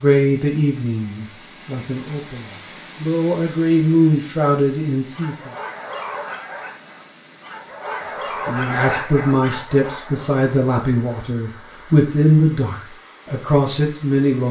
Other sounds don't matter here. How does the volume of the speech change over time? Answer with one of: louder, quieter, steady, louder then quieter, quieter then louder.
steady.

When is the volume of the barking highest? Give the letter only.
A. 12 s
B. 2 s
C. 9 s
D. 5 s
C.